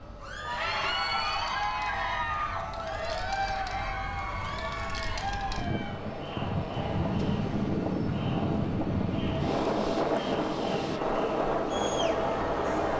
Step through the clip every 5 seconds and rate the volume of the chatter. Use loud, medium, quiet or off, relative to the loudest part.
loud, medium, loud.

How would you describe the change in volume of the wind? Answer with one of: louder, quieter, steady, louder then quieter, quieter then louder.
louder.